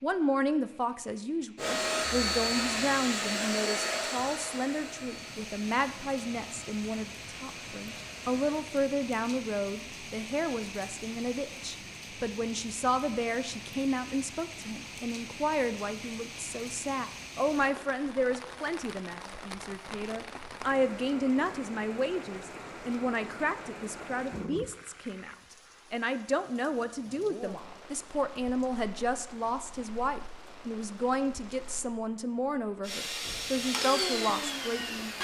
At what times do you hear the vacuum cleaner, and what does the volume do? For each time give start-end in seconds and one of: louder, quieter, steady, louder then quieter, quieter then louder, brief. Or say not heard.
1.6-8.7 quieter
32.8-35.2 brief.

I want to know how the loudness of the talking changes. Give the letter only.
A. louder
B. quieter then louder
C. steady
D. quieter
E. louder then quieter
C.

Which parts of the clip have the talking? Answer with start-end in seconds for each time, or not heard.
0.0-35.0.